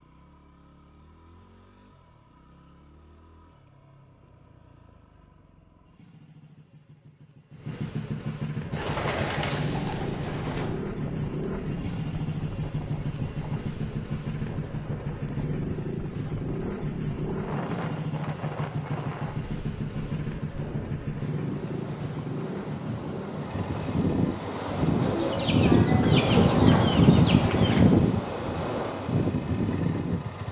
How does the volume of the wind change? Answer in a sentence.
The loudness of the wind goes up.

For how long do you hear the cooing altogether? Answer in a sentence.
You can hear the cooing for 5 seconds altogether.